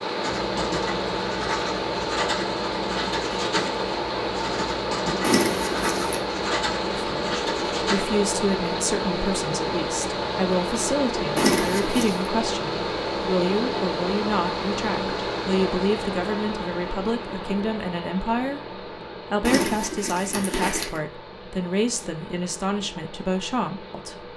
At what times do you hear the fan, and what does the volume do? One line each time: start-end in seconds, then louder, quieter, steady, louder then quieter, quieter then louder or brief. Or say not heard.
0.0-24.3 quieter.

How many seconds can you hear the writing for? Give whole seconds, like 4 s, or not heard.
8 s.